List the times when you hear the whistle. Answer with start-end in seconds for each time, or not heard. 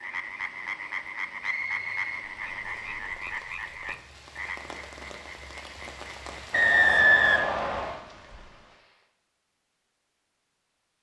1.4-3.0, 6.5-8.0.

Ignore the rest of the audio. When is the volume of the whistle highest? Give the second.
7 s.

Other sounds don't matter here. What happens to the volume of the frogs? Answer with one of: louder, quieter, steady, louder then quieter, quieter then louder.
quieter.